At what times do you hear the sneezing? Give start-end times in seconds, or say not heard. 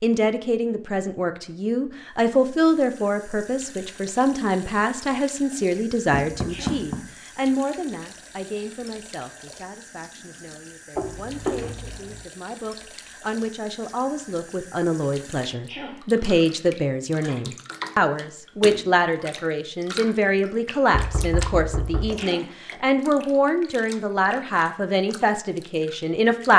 6.5-6.9, 15.7-16.1, 22.1-22.6.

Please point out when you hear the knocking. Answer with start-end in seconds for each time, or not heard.
6.1-7.0, 10.9-12.2, 20.9-22.2.